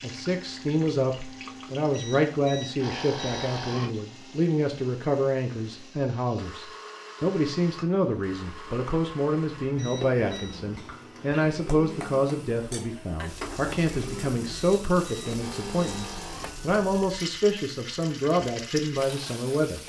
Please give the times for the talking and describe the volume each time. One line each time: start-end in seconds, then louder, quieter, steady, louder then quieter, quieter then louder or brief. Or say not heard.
0.0-19.8 steady.